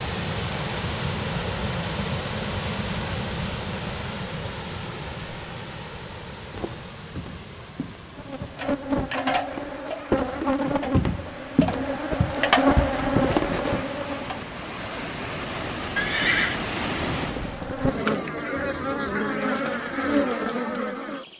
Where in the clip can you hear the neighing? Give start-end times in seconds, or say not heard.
15.9-16.6.